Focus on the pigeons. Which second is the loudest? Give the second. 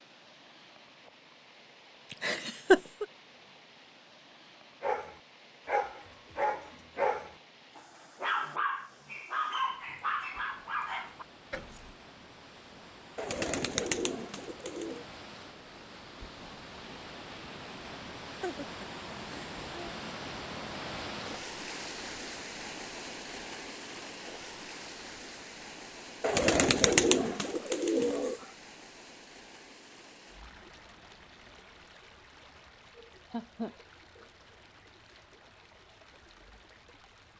27 s.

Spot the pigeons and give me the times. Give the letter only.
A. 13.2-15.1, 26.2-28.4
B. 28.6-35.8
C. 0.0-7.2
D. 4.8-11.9
A.